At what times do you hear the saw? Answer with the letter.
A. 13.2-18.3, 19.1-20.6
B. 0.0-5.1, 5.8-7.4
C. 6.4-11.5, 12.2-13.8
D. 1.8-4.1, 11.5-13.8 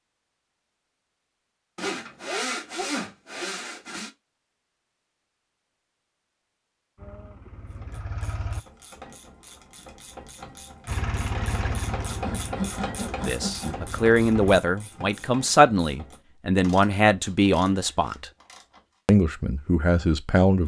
D.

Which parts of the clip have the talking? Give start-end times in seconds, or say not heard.
13.2-18.3, 19.1-20.6.